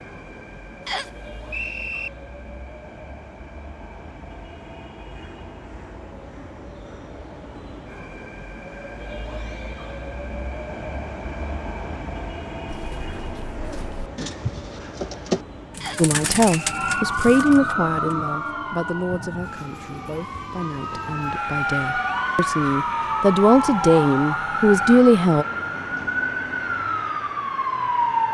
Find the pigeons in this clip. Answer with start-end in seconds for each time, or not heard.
12.7-18.1.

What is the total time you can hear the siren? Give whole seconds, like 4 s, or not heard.
12 s.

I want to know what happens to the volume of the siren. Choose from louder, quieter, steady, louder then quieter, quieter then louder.
quieter then louder.